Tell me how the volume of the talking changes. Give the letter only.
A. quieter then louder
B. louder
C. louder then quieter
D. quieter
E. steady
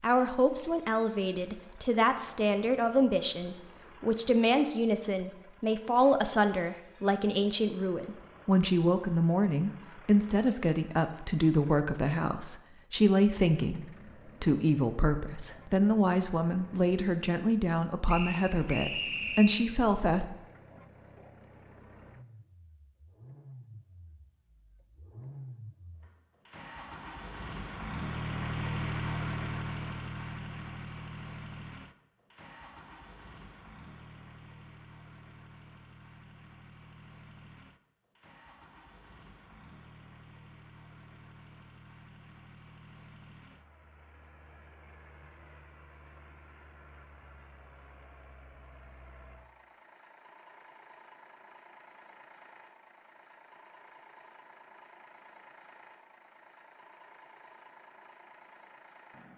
E.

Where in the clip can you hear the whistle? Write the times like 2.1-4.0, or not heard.
18.1-19.7.